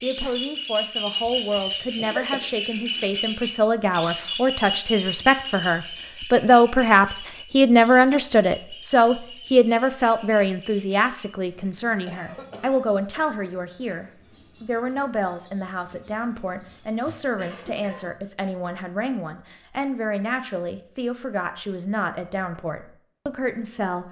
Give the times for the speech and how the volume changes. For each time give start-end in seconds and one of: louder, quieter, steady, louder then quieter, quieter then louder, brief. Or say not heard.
0.0-24.0 louder then quieter.